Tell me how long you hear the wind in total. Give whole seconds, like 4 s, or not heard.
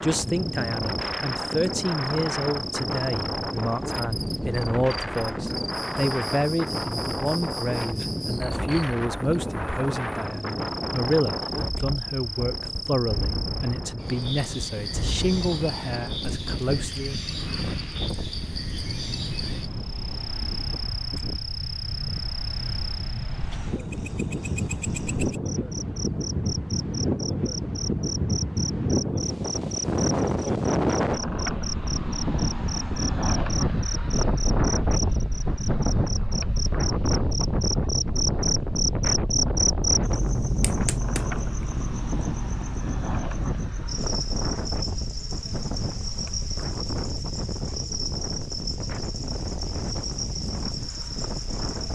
52 s.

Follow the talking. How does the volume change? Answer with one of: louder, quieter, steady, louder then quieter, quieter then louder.
steady.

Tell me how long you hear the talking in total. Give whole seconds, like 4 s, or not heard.
17 s.